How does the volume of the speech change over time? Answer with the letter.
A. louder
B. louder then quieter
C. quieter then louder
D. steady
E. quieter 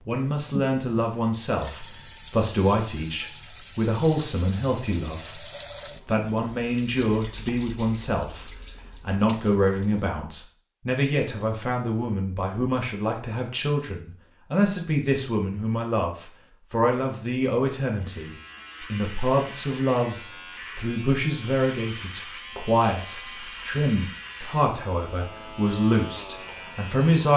D.